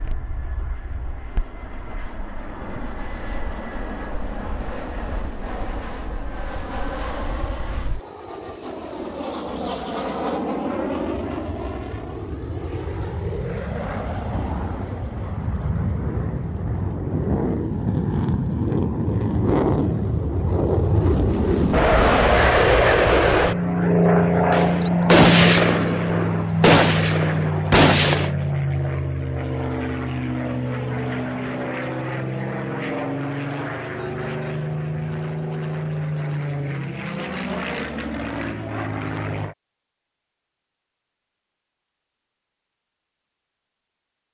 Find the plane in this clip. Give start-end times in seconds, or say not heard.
0.0-39.5.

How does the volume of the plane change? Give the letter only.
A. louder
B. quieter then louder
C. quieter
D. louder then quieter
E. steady
D.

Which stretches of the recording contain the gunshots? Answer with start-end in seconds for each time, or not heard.
24.5-28.3.